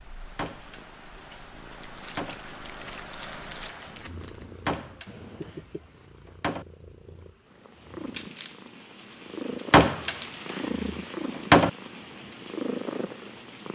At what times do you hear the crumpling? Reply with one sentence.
You can hear the crumpling from 1.8 to 4.5 s and from 8.1 to 10.7 s.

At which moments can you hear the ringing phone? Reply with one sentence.
You can't hear the ringing phone here.